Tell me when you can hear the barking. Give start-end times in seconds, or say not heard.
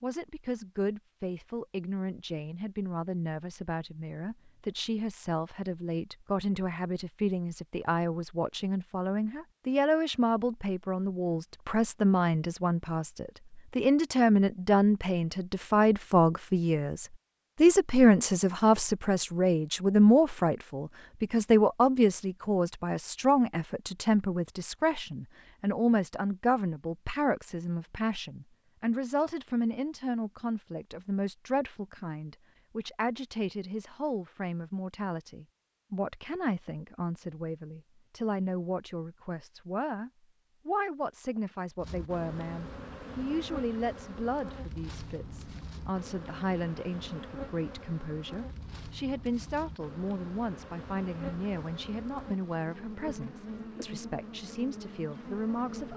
not heard.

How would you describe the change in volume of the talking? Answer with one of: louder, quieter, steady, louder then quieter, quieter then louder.
louder then quieter.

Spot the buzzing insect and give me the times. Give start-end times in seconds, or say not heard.
41.8-55.9.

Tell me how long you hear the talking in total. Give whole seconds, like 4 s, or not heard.
56 s.